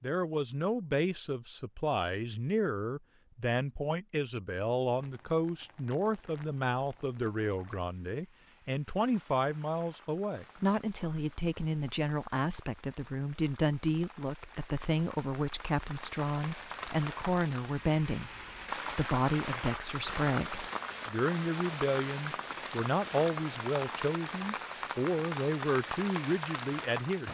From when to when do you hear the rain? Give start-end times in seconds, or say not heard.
5.0-27.2.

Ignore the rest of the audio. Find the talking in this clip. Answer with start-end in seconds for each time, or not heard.
0.0-27.2.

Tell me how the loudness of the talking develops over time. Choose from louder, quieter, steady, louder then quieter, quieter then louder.
steady.